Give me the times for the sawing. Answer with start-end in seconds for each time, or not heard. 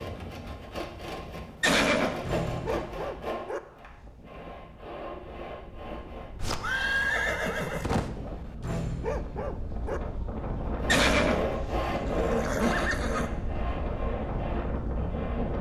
0.0-6.5, 10.6-15.5.